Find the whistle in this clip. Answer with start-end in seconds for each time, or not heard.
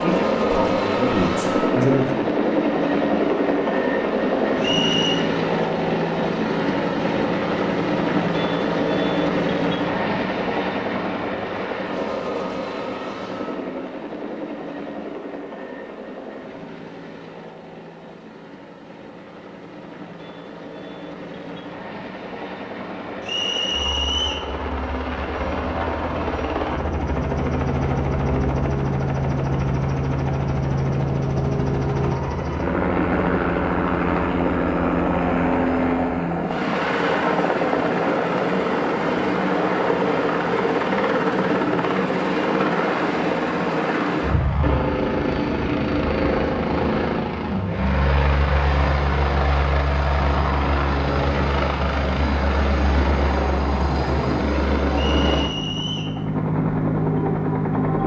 4.6-5.2, 23.2-24.5, 54.9-56.1.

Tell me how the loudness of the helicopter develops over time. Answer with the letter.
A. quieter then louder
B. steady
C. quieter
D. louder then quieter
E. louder
A.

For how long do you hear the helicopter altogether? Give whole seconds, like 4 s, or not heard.
58 s.